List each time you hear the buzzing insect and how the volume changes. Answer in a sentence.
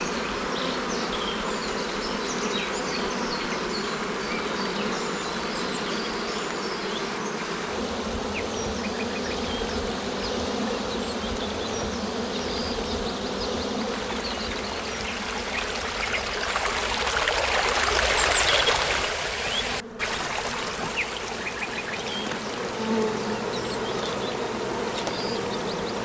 You can hear the buzzing insect from 0.0 to 25.9 s, getting quieter then louder.